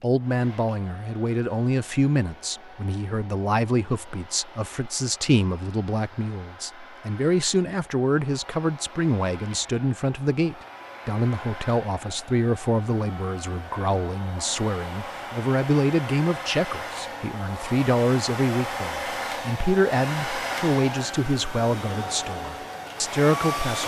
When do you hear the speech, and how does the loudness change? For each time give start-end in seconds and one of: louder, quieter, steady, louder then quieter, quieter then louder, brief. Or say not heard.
0.0-23.8 steady.